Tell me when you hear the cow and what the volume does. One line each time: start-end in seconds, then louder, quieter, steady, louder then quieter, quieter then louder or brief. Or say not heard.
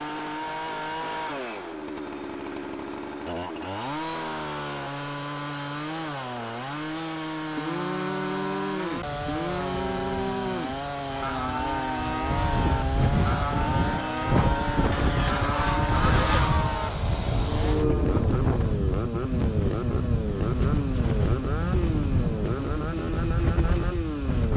7.5-18.2 steady.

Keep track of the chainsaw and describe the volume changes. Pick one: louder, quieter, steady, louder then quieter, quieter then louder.
steady.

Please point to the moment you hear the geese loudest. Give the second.
16 s.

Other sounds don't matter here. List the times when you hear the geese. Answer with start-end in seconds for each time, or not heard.
14.9-16.6.